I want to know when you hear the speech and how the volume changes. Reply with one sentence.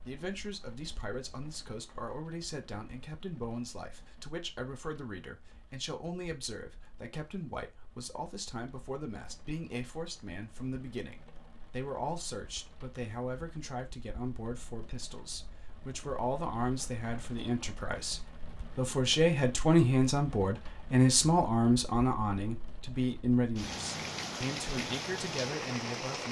The speech can be heard from 0.1 to 26.2 s, getting louder.